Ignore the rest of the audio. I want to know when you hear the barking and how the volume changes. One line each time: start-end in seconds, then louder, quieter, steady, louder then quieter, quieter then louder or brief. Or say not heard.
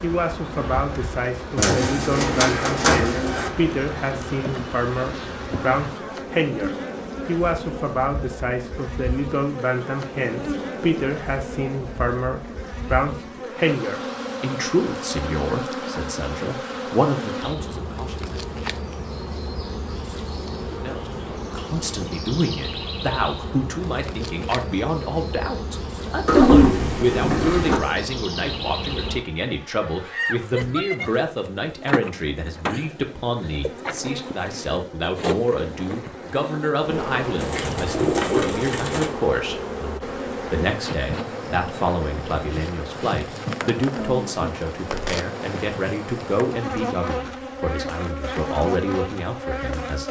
not heard.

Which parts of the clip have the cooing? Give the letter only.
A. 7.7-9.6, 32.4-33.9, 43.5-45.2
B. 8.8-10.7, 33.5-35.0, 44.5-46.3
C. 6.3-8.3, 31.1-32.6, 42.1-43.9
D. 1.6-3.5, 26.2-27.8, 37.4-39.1
D.